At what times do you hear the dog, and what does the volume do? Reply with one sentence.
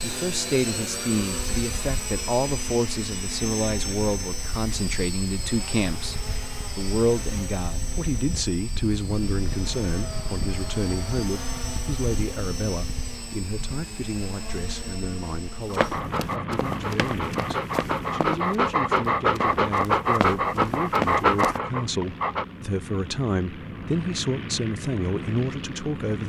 You can hear the dog from 15.7 to 22.4 s, getting louder.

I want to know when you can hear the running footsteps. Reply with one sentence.
You can hear the running footsteps from 15.6 to 21.6 s.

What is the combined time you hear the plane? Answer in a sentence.
You can hear the plane for 26 seconds altogether.